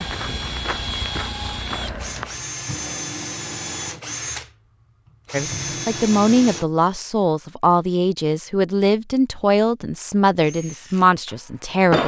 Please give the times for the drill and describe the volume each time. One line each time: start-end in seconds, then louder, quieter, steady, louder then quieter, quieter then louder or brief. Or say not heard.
0.0-6.7 steady
10.4-12.0 brief.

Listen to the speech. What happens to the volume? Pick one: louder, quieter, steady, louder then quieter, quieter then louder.
steady.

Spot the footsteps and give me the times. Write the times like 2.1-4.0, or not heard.
0.0-2.5.